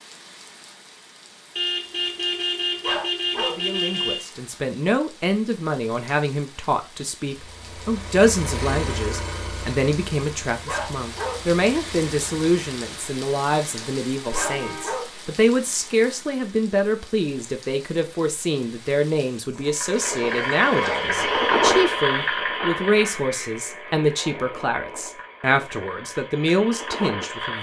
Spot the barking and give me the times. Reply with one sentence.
The barking can be heard from 2.8 to 3.6 s, from 10.7 to 11.4 s, from 14.3 to 15.1 s and from 20.8 to 21.6 s.